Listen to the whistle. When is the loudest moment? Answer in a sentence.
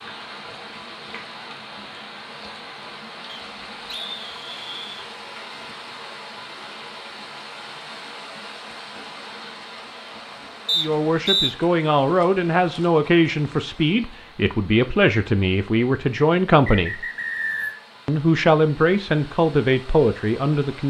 The loudest moment of the whistle is at 11 seconds.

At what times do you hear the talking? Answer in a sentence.
You can hear the talking from 10.8 to 17.1 s and from 18.1 to 20.8 s.